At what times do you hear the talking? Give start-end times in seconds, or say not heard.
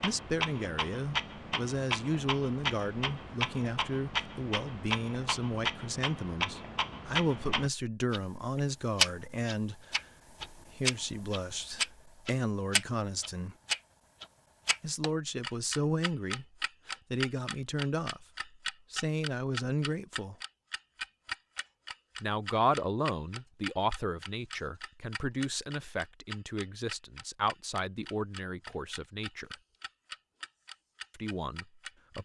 0.0-13.6, 14.8-20.4, 22.2-29.6, 31.1-32.1.